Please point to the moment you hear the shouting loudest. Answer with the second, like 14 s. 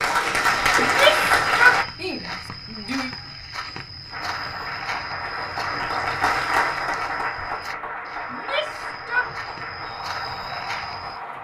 2 s.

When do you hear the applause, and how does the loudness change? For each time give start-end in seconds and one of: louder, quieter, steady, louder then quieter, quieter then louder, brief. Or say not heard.
0.0-1.9 brief
4.1-11.3 louder then quieter.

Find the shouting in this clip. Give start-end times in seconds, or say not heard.
0.8-3.1, 8.3-9.2.